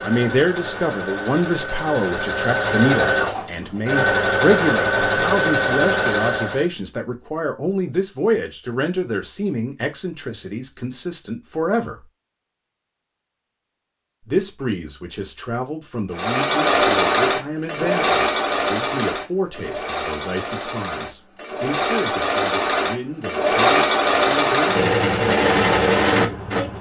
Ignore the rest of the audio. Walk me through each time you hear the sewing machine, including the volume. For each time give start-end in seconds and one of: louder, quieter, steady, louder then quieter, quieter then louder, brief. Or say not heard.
0.0-6.7 louder
16.1-26.7 quieter then louder.